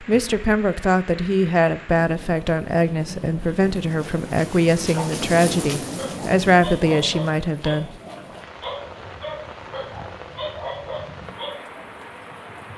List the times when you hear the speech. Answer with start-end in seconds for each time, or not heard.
0.0-8.0.